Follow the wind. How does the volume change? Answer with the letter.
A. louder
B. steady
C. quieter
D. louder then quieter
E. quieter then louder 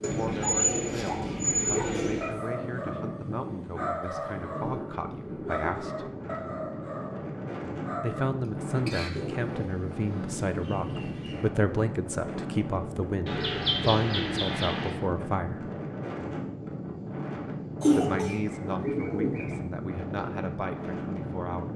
B.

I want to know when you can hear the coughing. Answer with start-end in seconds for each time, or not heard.
8.8-9.3, 17.8-18.5.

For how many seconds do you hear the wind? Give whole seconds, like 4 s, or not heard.
22 s.